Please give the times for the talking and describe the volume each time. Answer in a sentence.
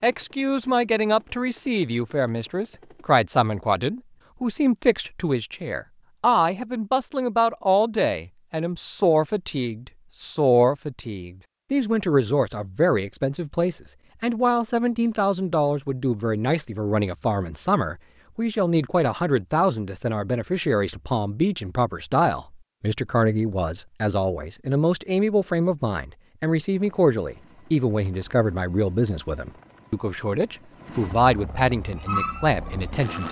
The talking can be heard from 0.0 to 33.2 s, at a steady volume.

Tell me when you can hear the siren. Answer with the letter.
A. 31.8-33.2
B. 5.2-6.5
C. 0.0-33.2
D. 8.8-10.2
A.